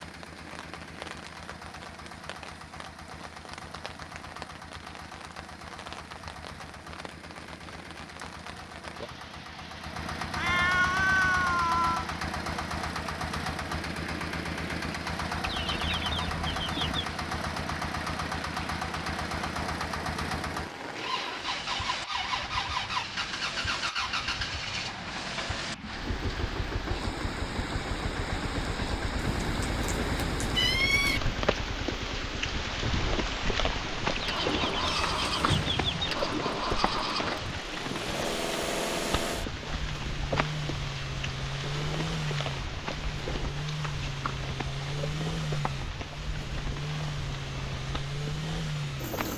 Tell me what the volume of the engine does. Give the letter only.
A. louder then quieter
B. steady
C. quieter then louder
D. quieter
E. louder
E.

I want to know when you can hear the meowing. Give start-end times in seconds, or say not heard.
10.3-12.1, 29.1-31.2, 34.9-36.0.